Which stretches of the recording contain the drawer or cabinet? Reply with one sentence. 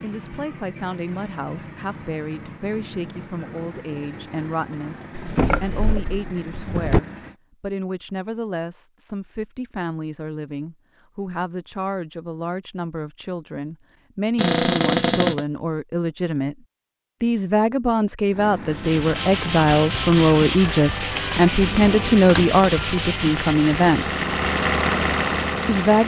You can hear the drawer or cabinet from 5.2 to 7.0 s, from 14.3 to 15.4 s and from 21.5 to 22.6 s.